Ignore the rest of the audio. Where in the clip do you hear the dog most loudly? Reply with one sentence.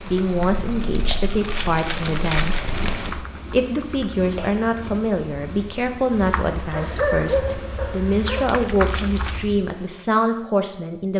The loudest moment of the dog is at 7 seconds.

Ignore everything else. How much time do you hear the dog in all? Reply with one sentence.
The dog can be heard for 2 seconds in total.